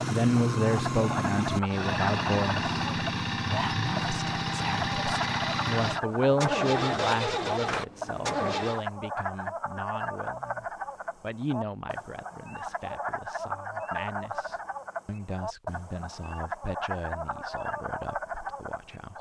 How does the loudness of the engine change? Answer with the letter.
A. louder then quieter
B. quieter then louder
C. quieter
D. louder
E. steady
E.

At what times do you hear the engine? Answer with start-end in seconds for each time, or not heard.
0.0-8.8.